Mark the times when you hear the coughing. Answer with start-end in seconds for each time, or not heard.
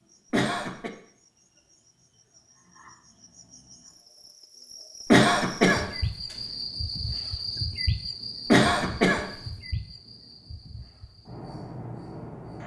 0.3-0.9, 5.1-5.9, 8.5-9.3.